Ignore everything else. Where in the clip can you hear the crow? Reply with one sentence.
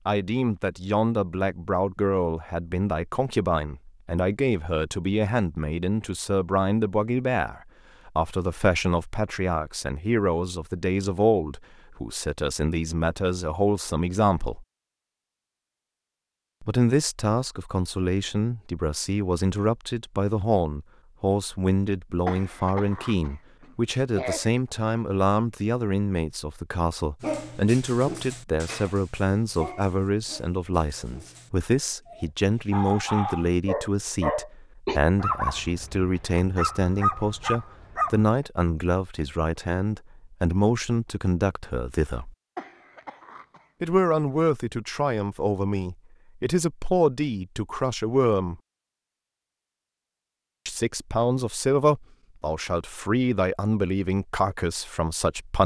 You can't hear the crow here.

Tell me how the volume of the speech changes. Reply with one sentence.
The loudness of the speech stays about the same.